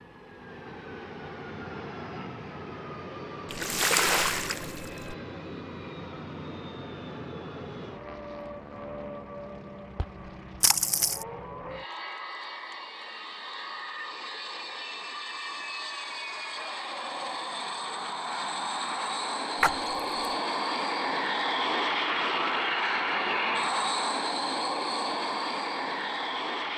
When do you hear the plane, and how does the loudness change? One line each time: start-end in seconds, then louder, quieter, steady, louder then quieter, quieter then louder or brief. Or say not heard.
0.0-26.7 louder.